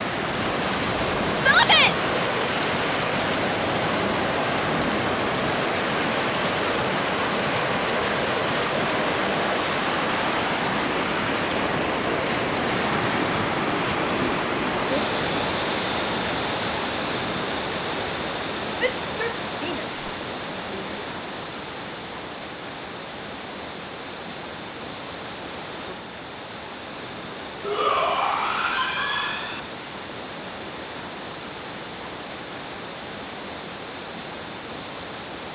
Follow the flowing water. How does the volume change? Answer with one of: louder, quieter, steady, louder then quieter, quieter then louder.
quieter.